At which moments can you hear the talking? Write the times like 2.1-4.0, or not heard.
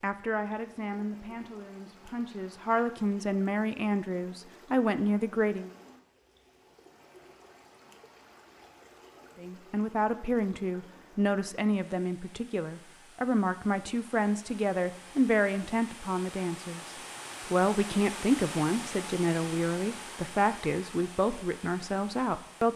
0.0-5.7, 9.3-22.7.